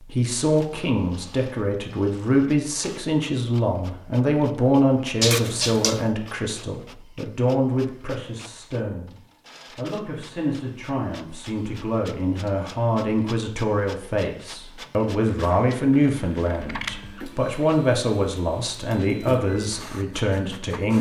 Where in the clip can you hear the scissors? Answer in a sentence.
You can hear the scissors from 5.2 to 6.1 s and from 15.2 to 16.9 s.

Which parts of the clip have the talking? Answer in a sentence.
You can hear the talking from 0.1 to 9.2 s and from 9.8 to 20.9 s.